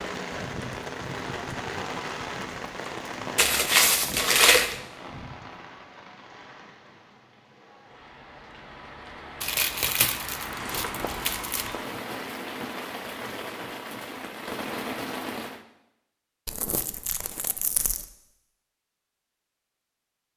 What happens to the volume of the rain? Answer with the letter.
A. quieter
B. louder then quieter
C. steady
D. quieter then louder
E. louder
D.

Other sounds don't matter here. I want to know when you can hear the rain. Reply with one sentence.
The rain can be heard from 0.0 to 15.7 s.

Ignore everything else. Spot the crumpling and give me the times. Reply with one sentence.
The crumpling can be heard from 3.4 to 4.8 s, from 9.4 to 11.7 s and from 16.4 to 18.1 s.